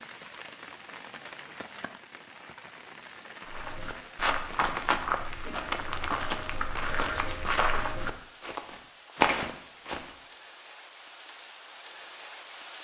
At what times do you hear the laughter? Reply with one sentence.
You can't hear the laughter here.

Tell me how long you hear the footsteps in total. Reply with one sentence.
The footsteps can be heard for 7 seconds in total.